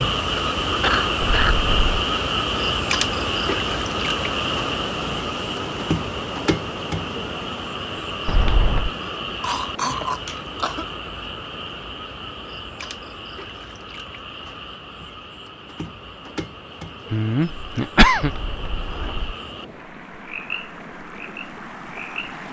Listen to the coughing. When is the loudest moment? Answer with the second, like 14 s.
18 s.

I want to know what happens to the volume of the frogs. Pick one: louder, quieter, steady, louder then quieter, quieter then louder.
quieter.